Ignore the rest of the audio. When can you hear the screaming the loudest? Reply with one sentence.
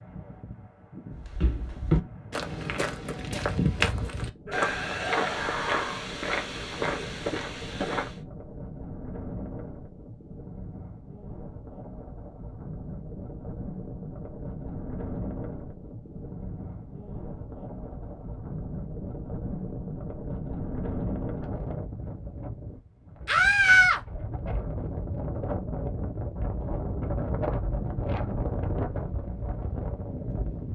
The volume of the screaming peaks at 24 seconds.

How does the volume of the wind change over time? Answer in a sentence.
The volume of the wind goes up.